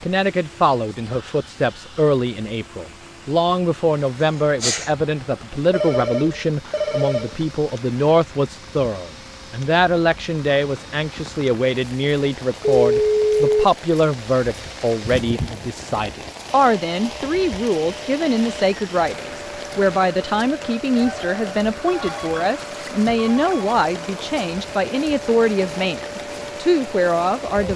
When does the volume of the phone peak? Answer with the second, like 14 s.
13 s.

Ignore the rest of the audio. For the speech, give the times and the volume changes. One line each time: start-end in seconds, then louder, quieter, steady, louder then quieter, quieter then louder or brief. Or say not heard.
0.0-27.7 steady.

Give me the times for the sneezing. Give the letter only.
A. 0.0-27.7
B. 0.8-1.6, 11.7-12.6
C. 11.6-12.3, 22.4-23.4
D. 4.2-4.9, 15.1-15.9
D.